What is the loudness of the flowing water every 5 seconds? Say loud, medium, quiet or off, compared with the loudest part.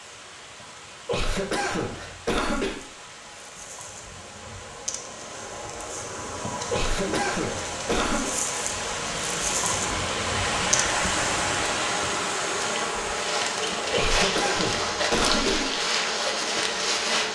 quiet, medium, loud, off.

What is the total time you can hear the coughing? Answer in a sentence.
The coughing can be heard for 5 seconds in total.